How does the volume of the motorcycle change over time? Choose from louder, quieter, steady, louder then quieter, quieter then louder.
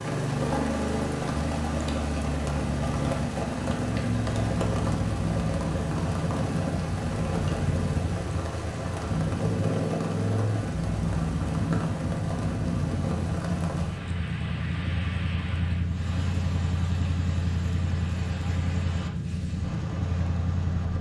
steady.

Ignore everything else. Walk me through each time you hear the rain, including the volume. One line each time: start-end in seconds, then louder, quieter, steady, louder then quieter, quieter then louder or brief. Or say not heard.
0.0-20.9 quieter.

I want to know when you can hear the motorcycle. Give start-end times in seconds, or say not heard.
0.0-20.9.